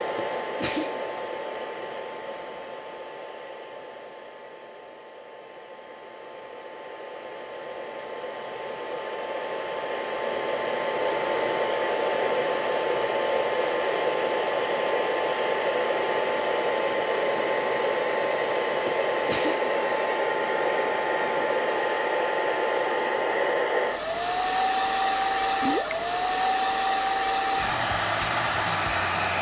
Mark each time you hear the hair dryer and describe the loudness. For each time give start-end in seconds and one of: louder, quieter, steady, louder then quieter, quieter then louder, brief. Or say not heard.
0.0-29.3 louder.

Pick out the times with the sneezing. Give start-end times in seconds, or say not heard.
0.1-1.1, 18.9-19.6.